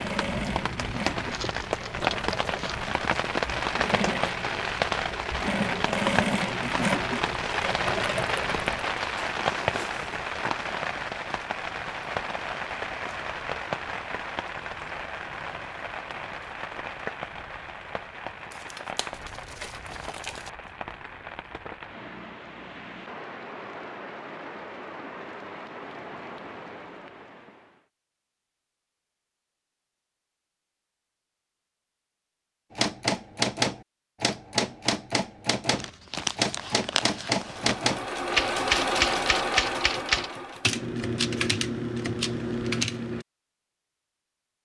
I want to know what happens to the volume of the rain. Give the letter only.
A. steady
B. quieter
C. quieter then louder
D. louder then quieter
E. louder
B.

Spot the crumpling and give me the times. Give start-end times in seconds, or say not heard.
1.2-2.9, 18.5-20.5, 35.7-37.8.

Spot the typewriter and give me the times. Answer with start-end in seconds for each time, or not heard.
32.8-43.2.